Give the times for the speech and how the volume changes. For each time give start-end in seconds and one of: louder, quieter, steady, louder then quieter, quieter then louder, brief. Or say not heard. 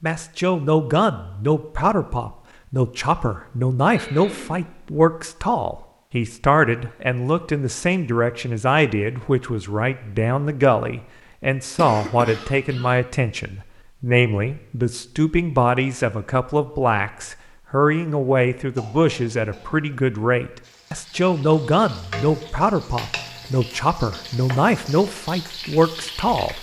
0.0-26.5 steady.